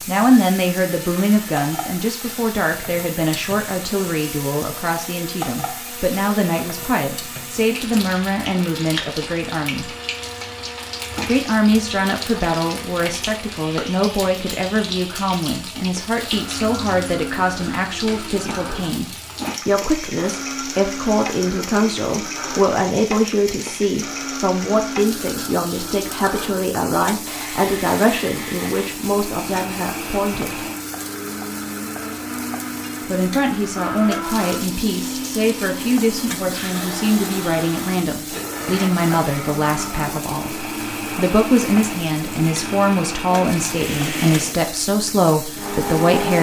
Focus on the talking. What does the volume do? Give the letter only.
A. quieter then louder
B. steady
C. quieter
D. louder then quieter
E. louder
B.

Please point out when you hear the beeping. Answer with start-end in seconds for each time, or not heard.
not heard.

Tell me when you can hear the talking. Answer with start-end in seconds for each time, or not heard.
0.1-9.9, 11.2-30.6, 33.0-46.3.